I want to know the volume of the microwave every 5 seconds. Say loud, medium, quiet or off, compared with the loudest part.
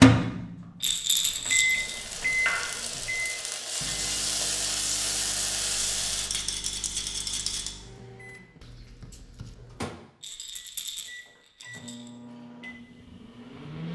loud, quiet, quiet.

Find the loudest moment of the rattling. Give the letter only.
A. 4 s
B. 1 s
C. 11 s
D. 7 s
B.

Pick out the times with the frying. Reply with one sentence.
The frying can be heard from 1.7 to 6.3 s.